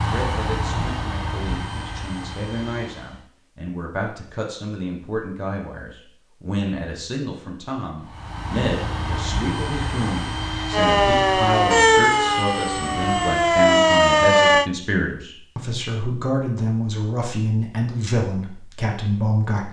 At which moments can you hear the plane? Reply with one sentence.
The plane can be heard from 0.0 to 3.3 s and from 8.0 to 13.7 s.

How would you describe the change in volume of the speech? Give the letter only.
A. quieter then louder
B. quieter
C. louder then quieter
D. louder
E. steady
D.